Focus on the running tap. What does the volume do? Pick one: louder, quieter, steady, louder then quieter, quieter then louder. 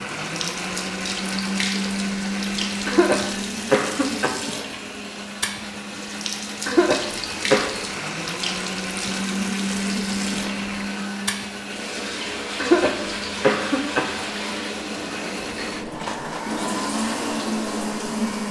steady.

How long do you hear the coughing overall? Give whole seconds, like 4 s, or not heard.
4 s.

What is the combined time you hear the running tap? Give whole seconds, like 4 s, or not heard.
18 s.